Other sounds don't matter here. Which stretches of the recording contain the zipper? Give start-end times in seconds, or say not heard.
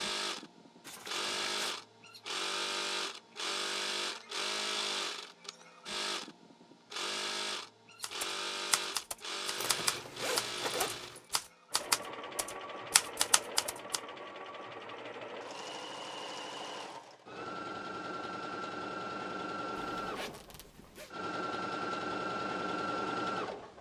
0.8-1.8, 9.6-11.2, 19.9-21.1.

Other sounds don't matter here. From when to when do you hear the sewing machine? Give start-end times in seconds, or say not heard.
0.0-23.7.